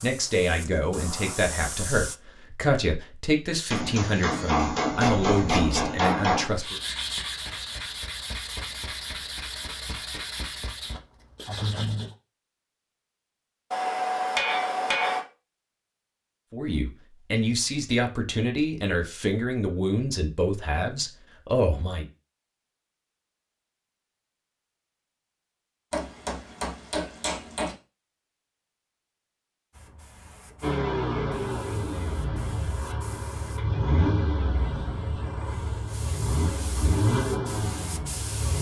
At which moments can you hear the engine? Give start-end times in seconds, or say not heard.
30.6-38.5.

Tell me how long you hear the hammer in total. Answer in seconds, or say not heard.
6 s.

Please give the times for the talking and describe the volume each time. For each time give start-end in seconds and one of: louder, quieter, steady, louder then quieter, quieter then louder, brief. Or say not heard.
0.0-6.8 steady
16.5-22.1 steady.